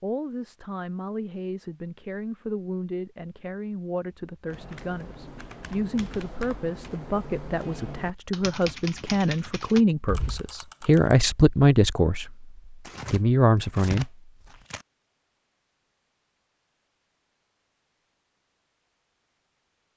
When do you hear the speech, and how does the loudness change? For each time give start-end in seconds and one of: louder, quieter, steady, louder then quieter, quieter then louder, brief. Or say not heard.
0.0-14.2 louder.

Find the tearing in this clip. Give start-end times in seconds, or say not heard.
12.8-14.8.